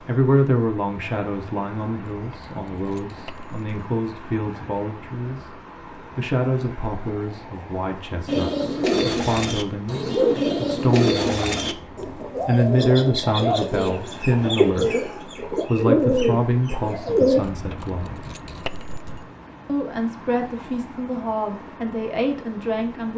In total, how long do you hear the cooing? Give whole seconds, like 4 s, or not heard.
9 s.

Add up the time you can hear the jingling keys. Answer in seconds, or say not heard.
3 s.